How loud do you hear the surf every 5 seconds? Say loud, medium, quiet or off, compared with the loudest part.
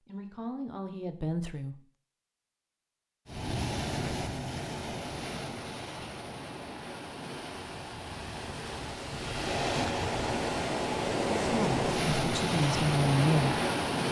medium, medium, loud.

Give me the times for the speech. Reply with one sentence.
You can hear the speech from 0.1 to 1.8 s and from 11.4 to 13.6 s.